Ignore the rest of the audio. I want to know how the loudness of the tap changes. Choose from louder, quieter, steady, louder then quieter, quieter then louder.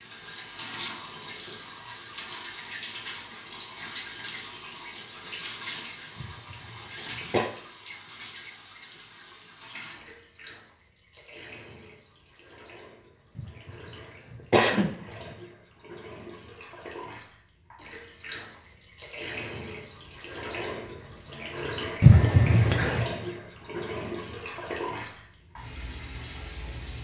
quieter then louder.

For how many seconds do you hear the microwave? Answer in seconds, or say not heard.
not heard.